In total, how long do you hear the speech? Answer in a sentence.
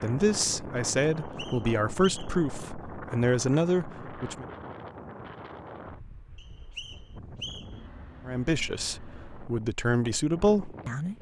You can hear the speech for 7 seconds altogether.